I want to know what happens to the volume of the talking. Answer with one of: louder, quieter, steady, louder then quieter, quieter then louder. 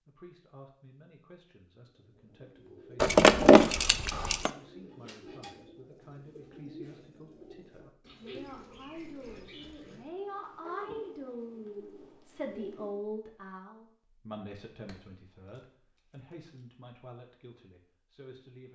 louder then quieter.